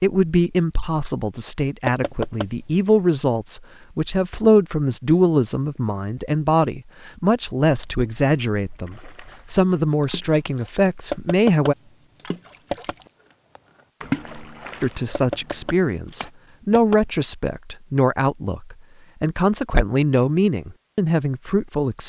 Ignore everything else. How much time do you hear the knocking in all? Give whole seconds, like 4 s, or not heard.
5 s.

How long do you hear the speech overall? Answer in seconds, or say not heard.
19 s.